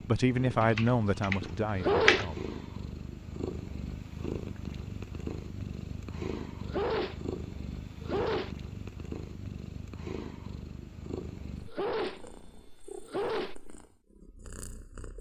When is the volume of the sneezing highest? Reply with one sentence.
The volume of the sneezing peaks at 2 seconds.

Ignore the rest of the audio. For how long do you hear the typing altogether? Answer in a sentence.
You can hear the typing for 2 seconds altogether.